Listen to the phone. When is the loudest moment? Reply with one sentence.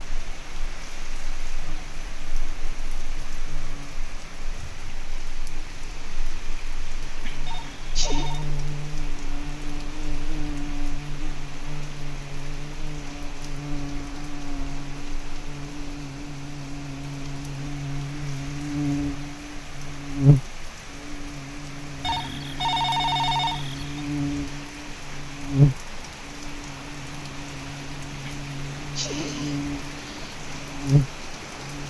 The loudest moment of the phone is at 23 seconds.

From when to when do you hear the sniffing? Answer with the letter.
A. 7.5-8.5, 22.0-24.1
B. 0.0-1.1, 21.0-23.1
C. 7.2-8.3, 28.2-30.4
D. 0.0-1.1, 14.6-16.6
C.